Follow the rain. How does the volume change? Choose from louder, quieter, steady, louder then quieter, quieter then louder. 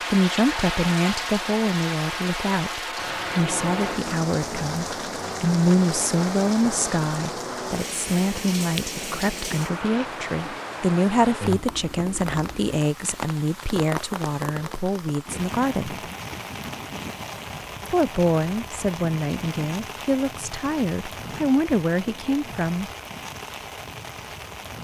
quieter.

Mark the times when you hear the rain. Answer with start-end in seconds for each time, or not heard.
0.0-24.7.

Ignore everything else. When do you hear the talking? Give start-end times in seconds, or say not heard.
0.1-15.9, 17.9-22.9.